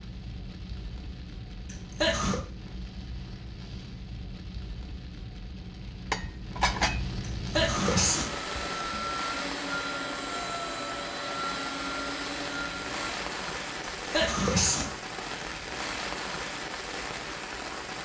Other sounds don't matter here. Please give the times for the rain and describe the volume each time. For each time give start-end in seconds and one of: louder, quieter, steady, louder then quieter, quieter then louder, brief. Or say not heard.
0.0-18.0 louder.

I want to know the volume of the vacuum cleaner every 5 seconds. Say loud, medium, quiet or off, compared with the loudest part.
off, loud, loud, off.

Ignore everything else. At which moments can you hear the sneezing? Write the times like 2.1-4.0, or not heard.
1.7-2.4, 7.2-9.1, 13.8-14.9.